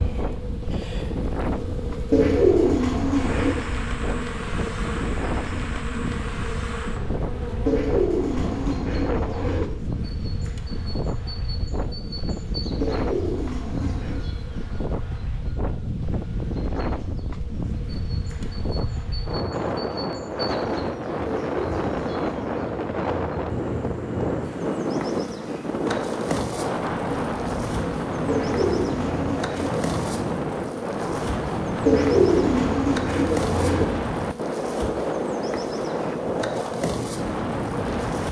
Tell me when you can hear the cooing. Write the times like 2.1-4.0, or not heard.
2.1-3.6, 7.7-9.7, 12.8-14.2, 21.2-23.2, 28.2-29.9, 31.9-33.9.